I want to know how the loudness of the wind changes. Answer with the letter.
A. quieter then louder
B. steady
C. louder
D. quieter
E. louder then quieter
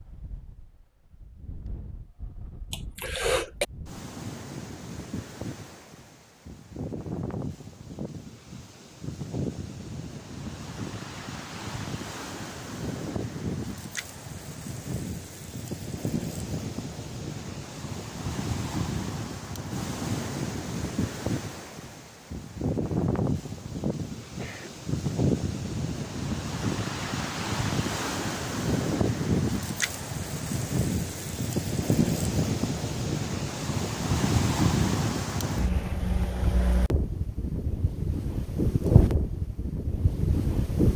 C.